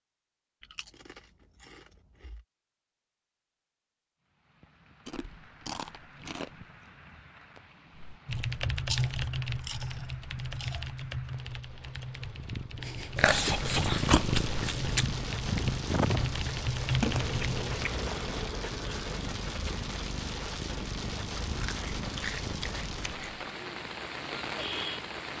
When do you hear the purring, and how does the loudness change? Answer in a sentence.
You can hear the purring from 12.3 to 22.9 s, getting quieter.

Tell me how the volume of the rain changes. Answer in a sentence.
The volume of the rain goes up.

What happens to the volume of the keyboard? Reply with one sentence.
The volume of the keyboard goes down, then up.